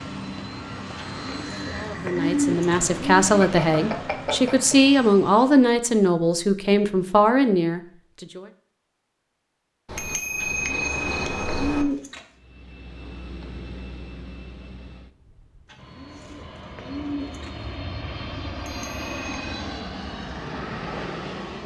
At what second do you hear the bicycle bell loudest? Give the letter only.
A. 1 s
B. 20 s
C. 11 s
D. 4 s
C.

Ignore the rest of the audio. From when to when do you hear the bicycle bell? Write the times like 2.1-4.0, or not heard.
3.4-4.8, 9.8-11.8, 18.6-19.6.